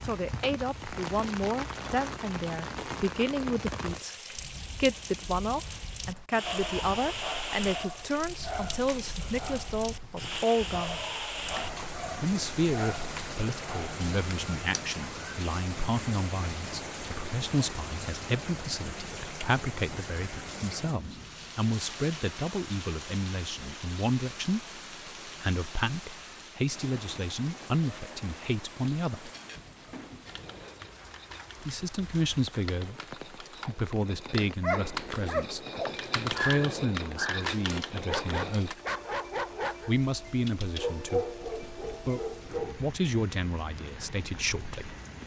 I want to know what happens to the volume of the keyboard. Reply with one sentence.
The volume of the keyboard goes up.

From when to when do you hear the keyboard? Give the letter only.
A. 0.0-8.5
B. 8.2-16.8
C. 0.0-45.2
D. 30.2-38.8
D.